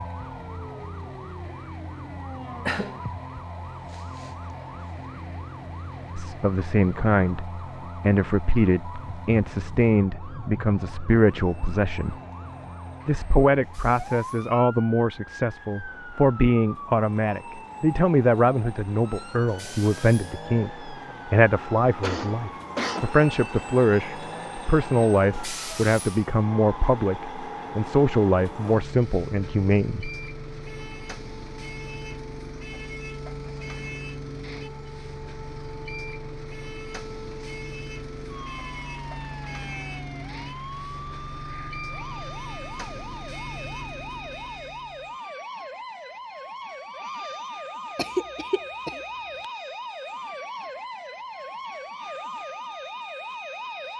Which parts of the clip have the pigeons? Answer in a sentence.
The pigeons can't be heard in this clip.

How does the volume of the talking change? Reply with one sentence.
The loudness of the talking stays about the same.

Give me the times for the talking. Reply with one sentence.
You can hear the talking from 6.2 to 12.2 s and from 13.1 to 30.1 s.